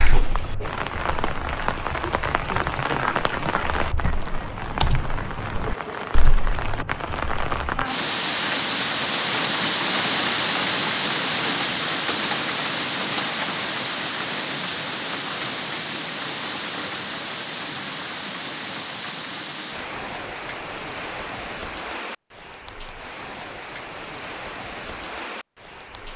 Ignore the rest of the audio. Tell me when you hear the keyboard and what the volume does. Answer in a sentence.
You can hear the keyboard from 0.0 to 7.8 s, getting louder then quieter.